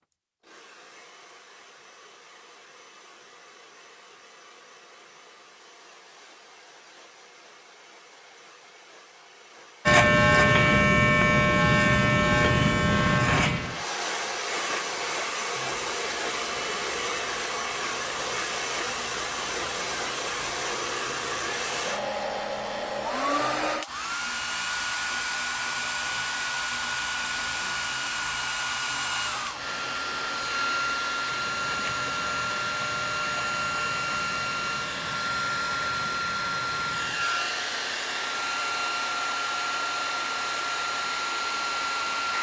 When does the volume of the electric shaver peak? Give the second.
10 s.